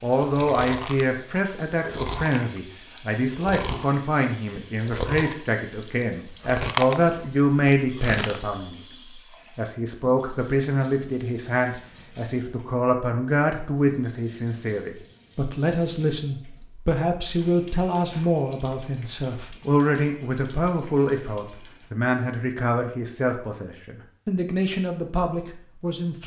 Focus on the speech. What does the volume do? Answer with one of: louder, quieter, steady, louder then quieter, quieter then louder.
steady.